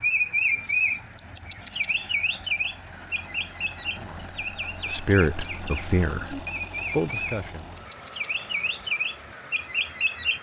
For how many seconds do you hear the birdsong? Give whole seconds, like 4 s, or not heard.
10 s.